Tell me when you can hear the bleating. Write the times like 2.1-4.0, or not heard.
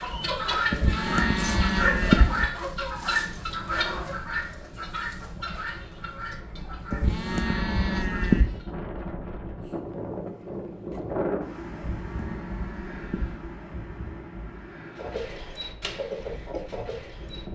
0.7-2.5, 6.9-8.5, 11.7-13.5.